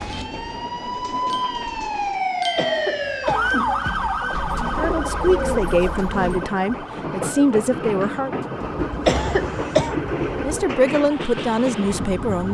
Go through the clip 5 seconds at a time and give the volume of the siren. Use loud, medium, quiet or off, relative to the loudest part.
loud, medium, quiet.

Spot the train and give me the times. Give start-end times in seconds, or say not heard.
0.0-12.4.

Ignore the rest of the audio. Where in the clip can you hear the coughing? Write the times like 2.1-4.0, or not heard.
2.5-4.3, 9.1-9.9.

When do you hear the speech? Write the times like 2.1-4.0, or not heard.
4.8-8.3, 10.4-12.4.